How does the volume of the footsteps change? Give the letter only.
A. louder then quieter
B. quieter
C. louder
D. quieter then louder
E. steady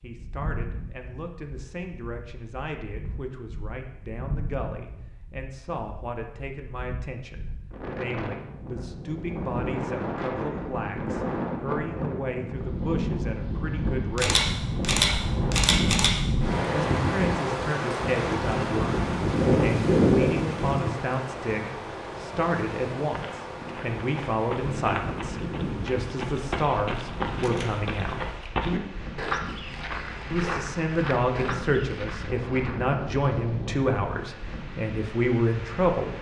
A.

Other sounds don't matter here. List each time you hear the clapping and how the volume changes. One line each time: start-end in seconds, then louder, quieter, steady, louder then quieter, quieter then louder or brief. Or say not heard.
not heard.